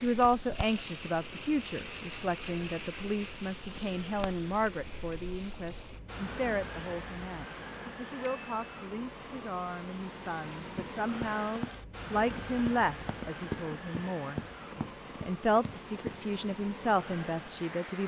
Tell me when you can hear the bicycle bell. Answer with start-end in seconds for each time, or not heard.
8.2-8.8.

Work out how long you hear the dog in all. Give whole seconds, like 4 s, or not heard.
not heard.